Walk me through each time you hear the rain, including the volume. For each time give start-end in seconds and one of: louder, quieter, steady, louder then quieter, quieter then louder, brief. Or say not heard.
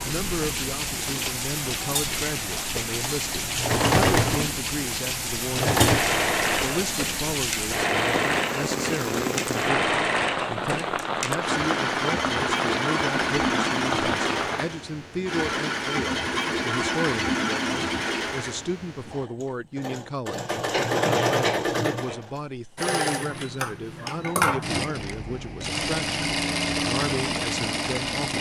0.0-14.7 steady.